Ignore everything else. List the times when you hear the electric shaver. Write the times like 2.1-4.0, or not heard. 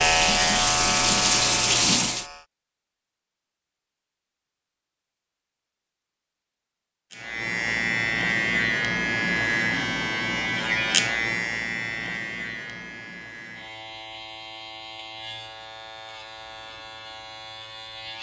0.0-2.5, 7.1-18.1.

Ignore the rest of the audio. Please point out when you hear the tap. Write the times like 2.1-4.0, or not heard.
0.0-2.2.